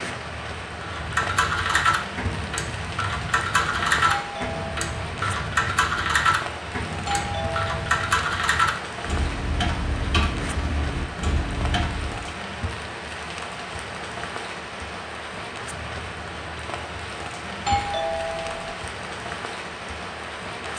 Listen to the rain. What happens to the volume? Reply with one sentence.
The volume of the rain stays about the same.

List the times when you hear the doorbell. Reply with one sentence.
The doorbell can be heard from 4.0 to 4.9 s, from 7.0 to 8.1 s and from 17.6 to 18.8 s.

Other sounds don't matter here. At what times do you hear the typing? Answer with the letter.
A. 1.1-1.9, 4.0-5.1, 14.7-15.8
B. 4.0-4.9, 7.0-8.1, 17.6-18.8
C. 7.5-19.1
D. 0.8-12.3
D.